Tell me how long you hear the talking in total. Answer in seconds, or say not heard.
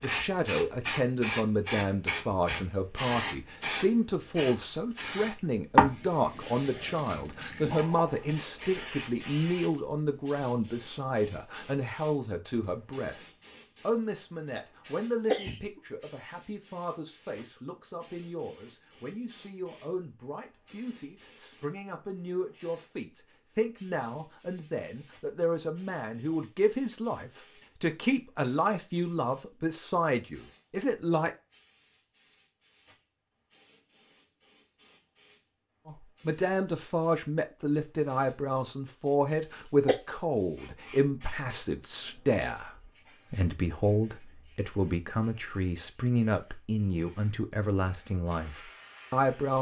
44 s.